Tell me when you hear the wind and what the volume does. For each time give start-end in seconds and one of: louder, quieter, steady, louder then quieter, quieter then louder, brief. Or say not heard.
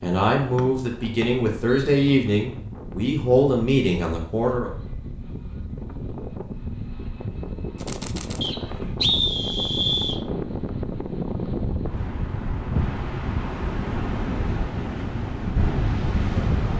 0.0-16.7 louder.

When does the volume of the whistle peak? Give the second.
9 s.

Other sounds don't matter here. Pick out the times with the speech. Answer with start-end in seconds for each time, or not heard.
0.0-4.7.